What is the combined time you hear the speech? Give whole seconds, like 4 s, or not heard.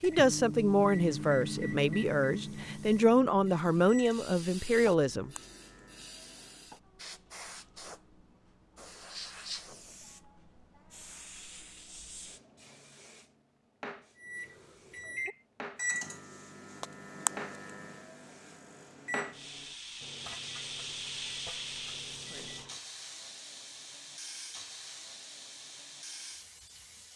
5 s.